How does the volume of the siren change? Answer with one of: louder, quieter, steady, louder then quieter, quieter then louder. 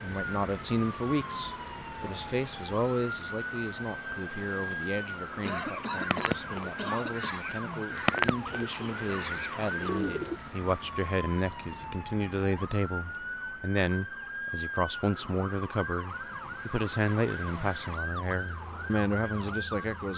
steady.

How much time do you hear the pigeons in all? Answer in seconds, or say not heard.
5 s.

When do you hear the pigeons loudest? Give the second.
8 s.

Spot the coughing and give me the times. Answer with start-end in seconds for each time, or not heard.
5.4-7.5.